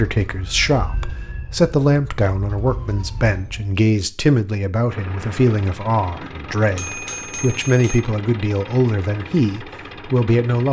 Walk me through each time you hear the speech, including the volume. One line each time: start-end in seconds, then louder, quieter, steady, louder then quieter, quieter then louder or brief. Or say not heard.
0.0-10.6 steady.